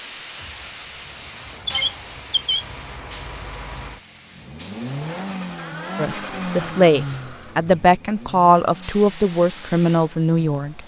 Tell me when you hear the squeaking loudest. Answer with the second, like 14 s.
2 s.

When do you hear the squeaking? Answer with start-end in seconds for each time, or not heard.
1.6-2.6, 5.5-7.6.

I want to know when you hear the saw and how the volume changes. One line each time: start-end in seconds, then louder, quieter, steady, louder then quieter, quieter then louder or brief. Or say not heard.
not heard.